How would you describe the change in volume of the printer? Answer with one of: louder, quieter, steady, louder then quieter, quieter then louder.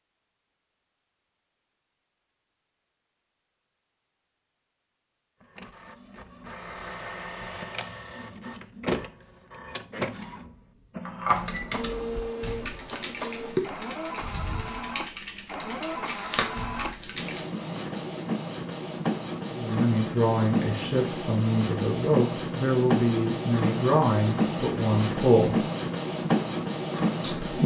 louder.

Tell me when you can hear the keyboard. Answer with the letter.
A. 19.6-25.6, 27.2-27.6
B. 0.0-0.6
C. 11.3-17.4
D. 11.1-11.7
C.